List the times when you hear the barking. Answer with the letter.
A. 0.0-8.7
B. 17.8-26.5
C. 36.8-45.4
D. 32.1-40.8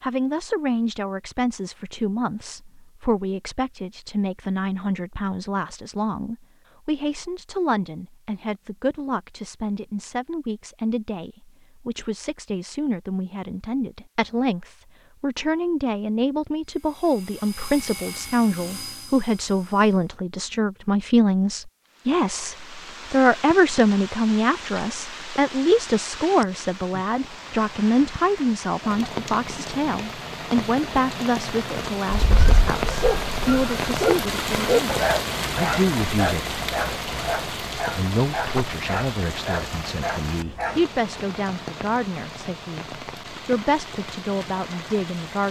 D.